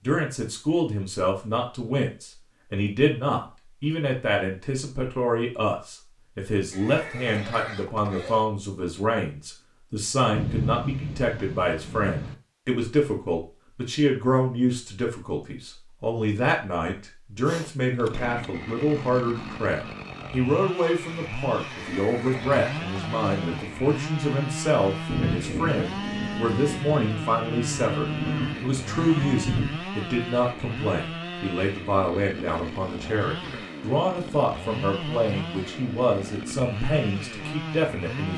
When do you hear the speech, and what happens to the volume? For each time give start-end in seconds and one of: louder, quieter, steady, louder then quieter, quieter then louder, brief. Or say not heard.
0.0-38.3 steady.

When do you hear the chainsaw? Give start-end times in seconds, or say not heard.
17.4-38.3.